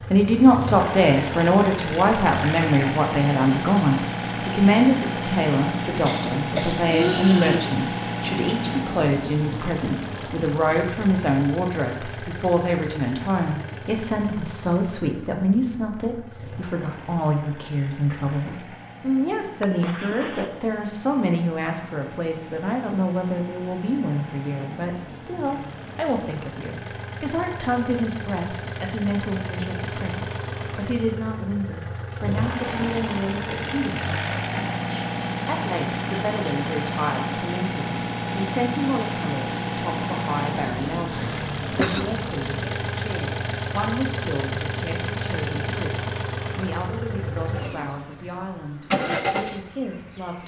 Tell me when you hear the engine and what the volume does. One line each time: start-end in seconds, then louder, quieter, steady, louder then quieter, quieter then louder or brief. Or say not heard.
0.0-50.4 quieter then louder.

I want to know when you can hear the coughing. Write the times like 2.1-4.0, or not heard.
6.0-7.7, 19.6-20.5, 41.1-42.1.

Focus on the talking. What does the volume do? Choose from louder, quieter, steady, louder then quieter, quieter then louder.
quieter.